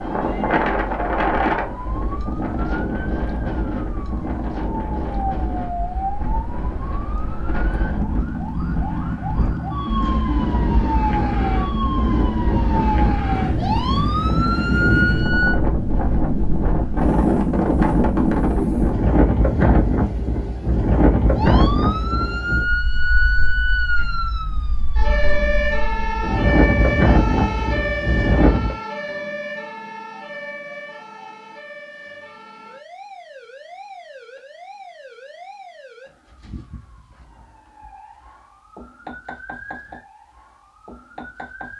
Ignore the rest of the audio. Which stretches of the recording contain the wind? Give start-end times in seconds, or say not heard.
0.0-28.8.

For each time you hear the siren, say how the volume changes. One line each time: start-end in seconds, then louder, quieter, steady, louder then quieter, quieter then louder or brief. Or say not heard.
0.0-15.6 louder
21.4-41.7 quieter.